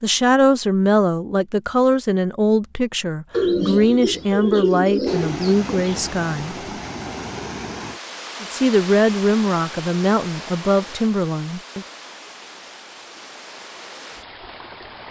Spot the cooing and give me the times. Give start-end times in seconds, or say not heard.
3.3-6.0.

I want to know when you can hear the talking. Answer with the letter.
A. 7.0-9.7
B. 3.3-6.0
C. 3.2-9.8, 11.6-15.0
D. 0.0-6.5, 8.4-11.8
D.